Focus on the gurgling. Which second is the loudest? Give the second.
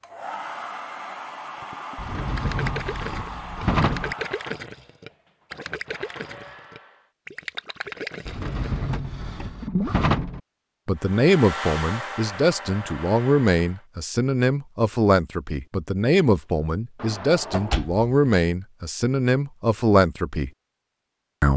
10 s.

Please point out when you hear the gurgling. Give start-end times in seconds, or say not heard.
1.6-10.0.